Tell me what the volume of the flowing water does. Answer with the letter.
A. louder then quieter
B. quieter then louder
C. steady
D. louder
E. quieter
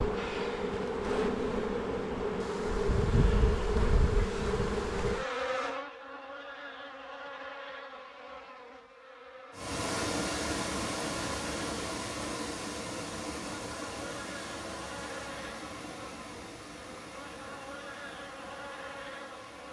E.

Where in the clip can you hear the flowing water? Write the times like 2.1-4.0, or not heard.
9.5-19.6.